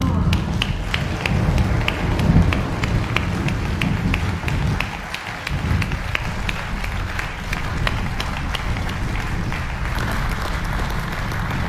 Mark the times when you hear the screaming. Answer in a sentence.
The screaming can't be heard in this clip.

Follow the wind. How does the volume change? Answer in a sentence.
The loudness of the wind goes down.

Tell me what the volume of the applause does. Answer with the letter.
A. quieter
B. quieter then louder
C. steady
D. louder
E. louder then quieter
C.